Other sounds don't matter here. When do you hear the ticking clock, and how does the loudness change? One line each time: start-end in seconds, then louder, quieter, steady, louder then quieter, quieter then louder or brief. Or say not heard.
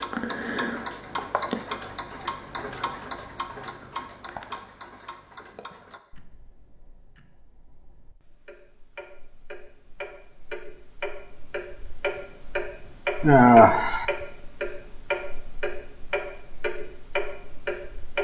0.0-18.1 quieter then louder.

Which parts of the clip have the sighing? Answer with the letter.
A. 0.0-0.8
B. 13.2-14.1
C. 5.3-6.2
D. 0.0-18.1
B.